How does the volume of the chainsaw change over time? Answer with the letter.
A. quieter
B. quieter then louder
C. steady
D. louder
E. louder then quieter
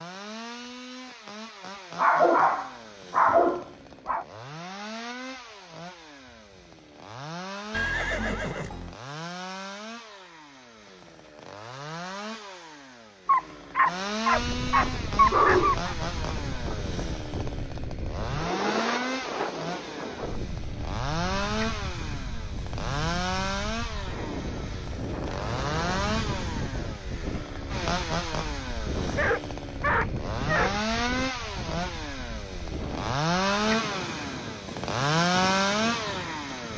D.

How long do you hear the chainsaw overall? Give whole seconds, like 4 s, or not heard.
37 s.